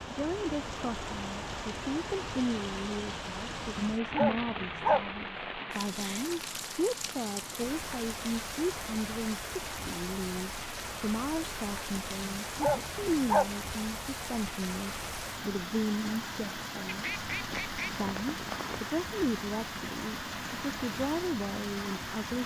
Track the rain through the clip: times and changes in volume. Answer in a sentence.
You can hear the rain from 0.0 to 22.4 s, at a steady volume.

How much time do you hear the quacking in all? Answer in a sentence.
You can hear the quacking for 2 seconds altogether.